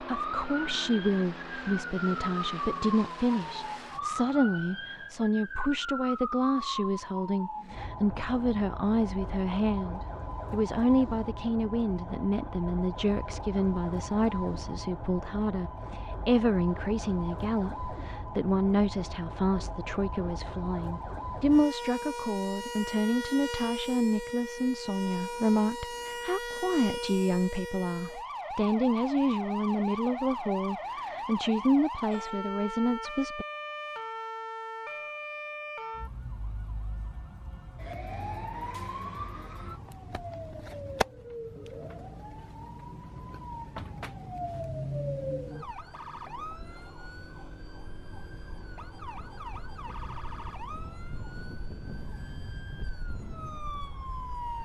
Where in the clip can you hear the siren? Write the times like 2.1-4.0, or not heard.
0.0-54.5.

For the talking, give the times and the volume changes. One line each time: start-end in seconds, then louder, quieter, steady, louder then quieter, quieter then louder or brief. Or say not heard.
0.0-33.5 steady.